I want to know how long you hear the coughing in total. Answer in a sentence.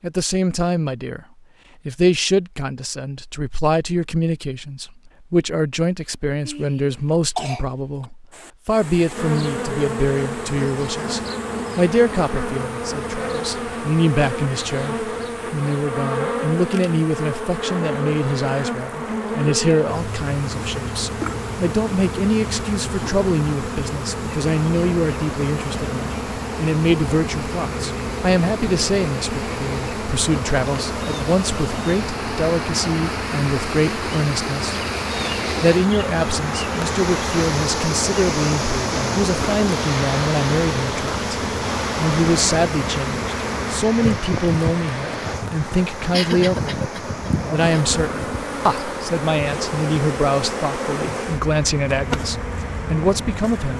The coughing can be heard for 3 seconds in total.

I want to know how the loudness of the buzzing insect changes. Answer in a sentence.
The loudness of the buzzing insect stays about the same.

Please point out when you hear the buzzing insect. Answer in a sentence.
You can hear the buzzing insect from 9.1 to 53.7 s.